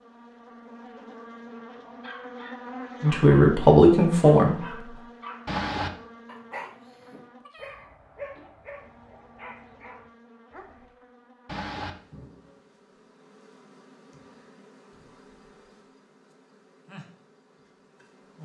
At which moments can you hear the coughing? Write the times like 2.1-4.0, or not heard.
5.5-5.9, 11.4-11.9.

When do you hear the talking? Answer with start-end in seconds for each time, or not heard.
3.0-5.0.